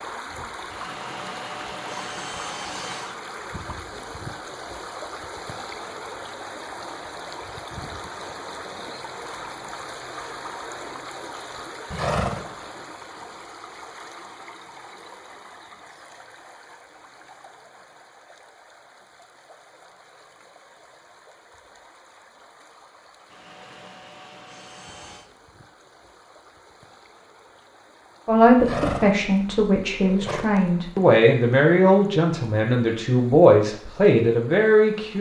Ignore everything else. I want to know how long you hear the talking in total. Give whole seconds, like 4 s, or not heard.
7 s.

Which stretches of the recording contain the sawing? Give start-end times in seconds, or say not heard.
0.7-3.2, 23.3-25.3.